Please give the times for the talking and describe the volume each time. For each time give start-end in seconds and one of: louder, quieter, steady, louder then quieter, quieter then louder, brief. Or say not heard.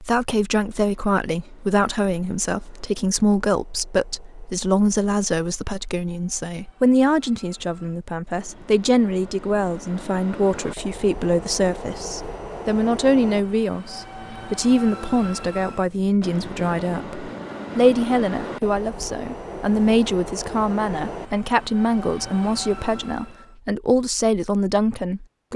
0.0-25.5 steady.